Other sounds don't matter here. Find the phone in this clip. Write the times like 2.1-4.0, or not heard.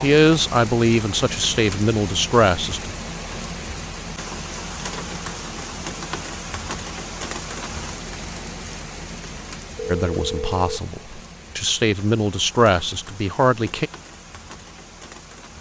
9.9-10.8.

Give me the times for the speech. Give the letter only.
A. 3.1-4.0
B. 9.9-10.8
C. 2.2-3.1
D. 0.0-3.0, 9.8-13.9
D.